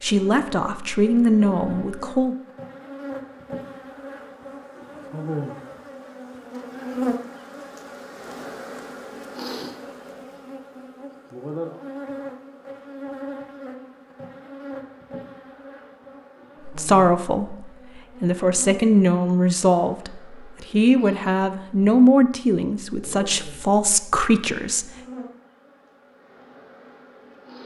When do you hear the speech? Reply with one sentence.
The speech can be heard from 0.0 to 2.4 s and from 16.6 to 24.9 s.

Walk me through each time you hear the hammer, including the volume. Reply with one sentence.
You can't hear the hammer here.